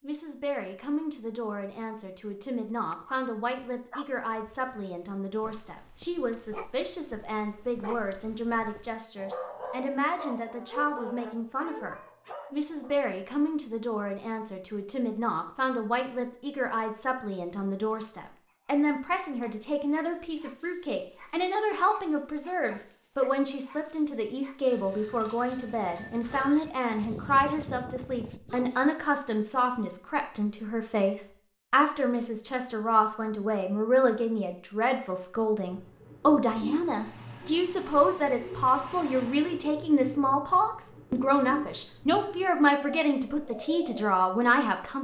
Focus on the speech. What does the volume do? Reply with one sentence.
The loudness of the speech goes up.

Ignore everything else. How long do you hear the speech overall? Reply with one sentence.
The speech can be heard for 45 seconds in total.